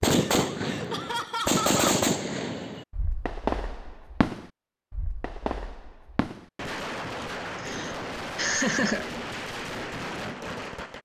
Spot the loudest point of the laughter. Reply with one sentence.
The volume of the laughter peaks at 9 seconds.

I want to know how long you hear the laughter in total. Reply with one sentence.
You can hear the laughter for 3 seconds altogether.